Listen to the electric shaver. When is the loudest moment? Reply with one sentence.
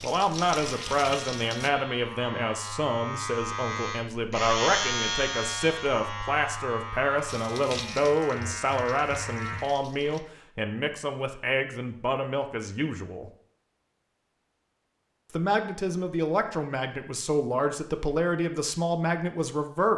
The loudest moment of the electric shaver is at 5 seconds.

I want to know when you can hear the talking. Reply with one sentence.
The talking can be heard from 0.0 to 13.3 s and from 15.3 to 19.9 s.